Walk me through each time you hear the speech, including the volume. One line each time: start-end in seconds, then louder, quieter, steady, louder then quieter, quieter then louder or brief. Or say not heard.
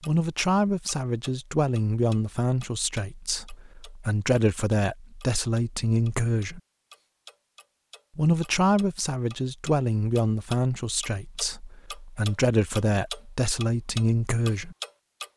0.1-6.6 quieter then louder
8.2-14.8 quieter then louder.